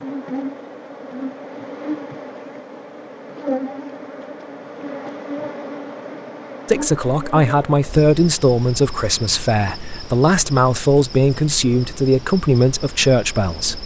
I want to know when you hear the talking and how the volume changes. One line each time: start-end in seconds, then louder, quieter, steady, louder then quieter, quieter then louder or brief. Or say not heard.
6.7-13.8 steady.